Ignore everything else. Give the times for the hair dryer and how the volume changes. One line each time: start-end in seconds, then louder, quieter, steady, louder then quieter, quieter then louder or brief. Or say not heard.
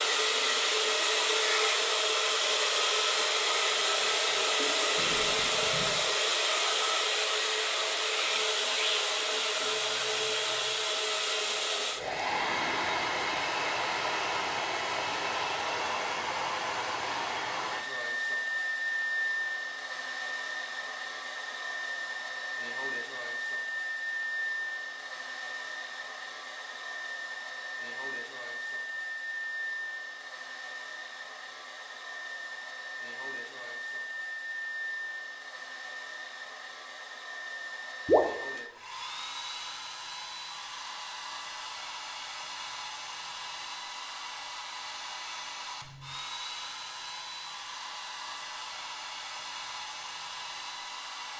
0.0-51.3 quieter.